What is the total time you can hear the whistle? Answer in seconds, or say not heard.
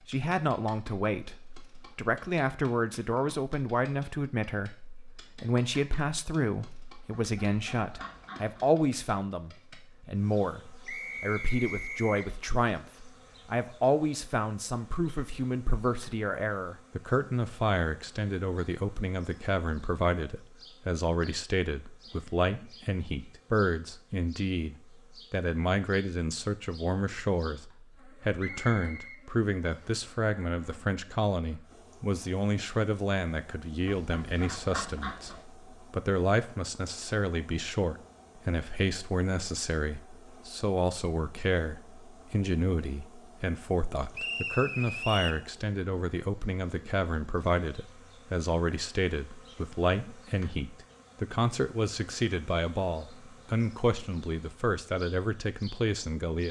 4 s.